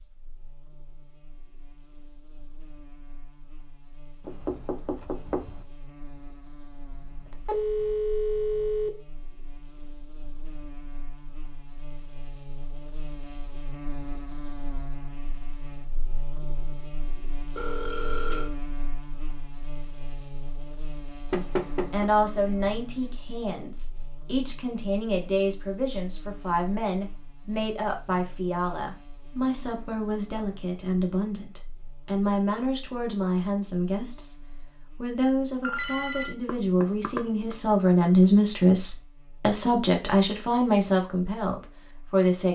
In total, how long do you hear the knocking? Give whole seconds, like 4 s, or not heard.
3 s.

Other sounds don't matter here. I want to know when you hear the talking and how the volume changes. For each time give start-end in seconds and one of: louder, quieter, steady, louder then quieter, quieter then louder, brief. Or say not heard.
21.4-34.4 steady
35.0-42.5 louder then quieter.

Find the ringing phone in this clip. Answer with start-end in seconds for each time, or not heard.
6.9-8.9, 17.6-18.5, 35.6-36.4.